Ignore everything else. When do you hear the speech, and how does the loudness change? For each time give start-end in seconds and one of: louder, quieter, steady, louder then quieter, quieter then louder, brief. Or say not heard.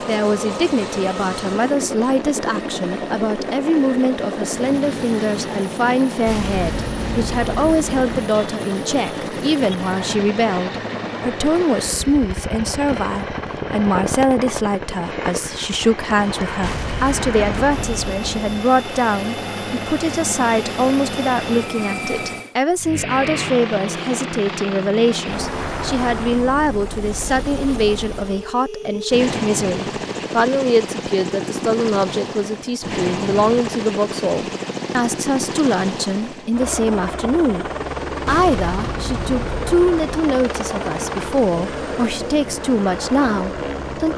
0.1-44.1 steady.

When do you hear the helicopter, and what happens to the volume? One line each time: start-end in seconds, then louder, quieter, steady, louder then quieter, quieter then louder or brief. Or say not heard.
0.0-44.1 steady.